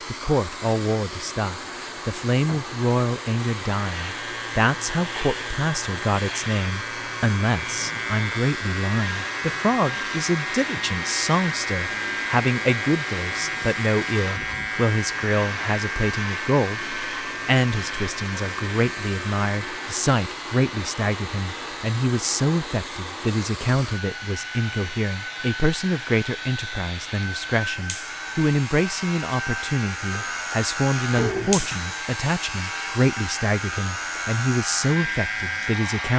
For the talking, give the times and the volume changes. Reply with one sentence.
The talking can be heard from 0.1 to 36.1 s, at a steady volume.